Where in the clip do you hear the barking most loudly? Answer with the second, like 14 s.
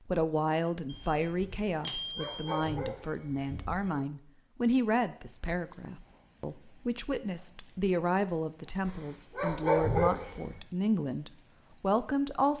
10 s.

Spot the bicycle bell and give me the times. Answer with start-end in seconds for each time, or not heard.
0.8-2.5.